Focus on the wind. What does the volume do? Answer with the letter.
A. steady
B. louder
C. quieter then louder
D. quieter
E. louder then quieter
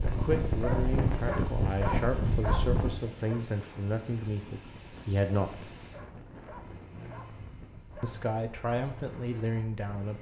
D.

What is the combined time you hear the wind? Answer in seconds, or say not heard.
10 s.